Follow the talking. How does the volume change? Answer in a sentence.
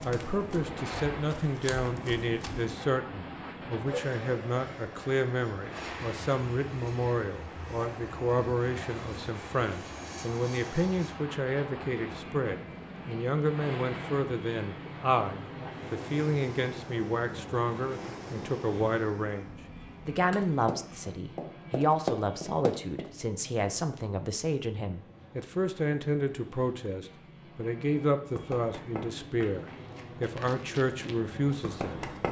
The loudness of the talking stays about the same.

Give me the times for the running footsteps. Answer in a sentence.
You can hear the running footsteps from 0.0 to 2.6 s, from 20.3 to 23.1 s and from 28.4 to 32.2 s.